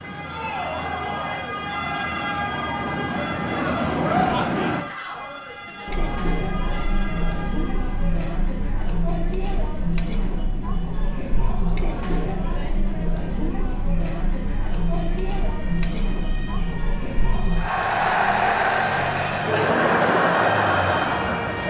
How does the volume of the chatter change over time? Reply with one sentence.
The volume of the chatter goes up.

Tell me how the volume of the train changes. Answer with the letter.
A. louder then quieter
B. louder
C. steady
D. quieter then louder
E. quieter
B.